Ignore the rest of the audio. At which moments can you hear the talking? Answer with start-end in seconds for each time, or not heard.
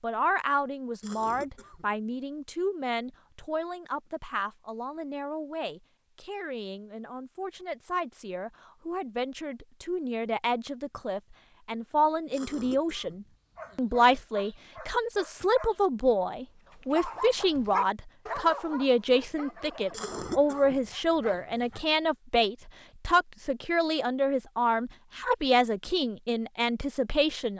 0.0-27.5.